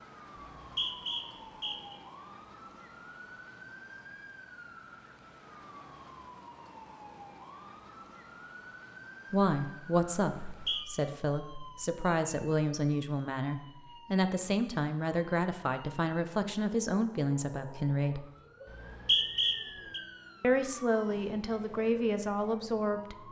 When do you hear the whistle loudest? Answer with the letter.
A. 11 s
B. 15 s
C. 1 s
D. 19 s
D.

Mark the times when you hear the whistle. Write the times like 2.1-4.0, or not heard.
0.3-1.9, 10.4-10.8, 18.6-20.0.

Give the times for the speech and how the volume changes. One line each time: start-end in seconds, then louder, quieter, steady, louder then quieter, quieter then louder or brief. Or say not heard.
9.3-18.2 steady
20.4-23.2 brief.